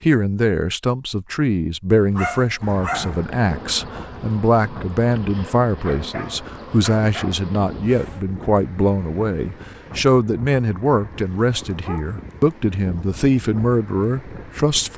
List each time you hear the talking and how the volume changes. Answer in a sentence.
You can hear the talking from 0.0 to 14.9 s, at a steady volume.